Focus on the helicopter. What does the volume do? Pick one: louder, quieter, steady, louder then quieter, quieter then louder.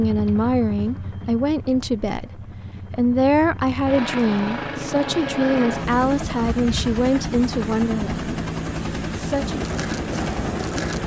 louder.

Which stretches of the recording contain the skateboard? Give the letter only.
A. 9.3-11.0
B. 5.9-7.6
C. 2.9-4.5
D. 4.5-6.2
A.